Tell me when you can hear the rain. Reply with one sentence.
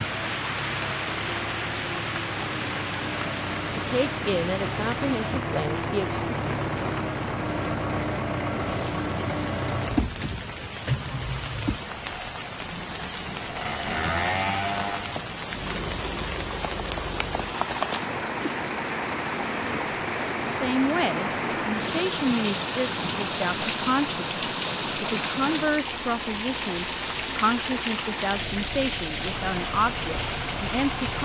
The rain can be heard from 0.0 to 31.1 s.